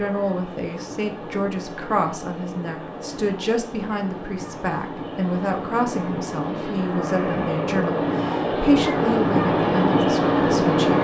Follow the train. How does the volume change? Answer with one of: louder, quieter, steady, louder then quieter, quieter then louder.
louder.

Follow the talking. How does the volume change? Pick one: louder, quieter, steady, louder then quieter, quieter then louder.
steady.